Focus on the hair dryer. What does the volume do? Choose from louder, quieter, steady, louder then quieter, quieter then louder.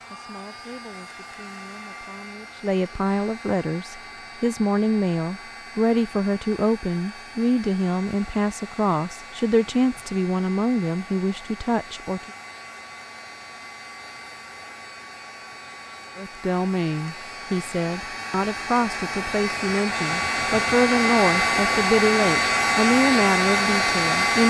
louder.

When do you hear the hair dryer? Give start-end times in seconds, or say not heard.
0.0-24.4.